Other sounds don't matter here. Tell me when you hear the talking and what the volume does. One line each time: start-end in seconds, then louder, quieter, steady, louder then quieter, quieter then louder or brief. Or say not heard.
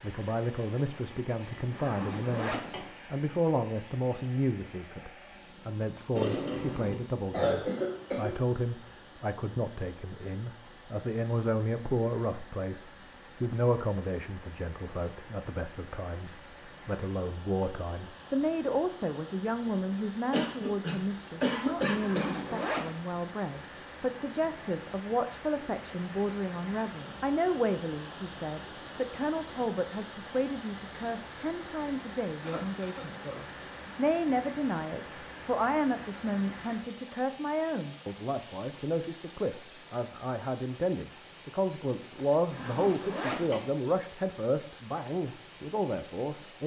0.0-46.6 steady.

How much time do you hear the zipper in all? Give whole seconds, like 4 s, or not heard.
4 s.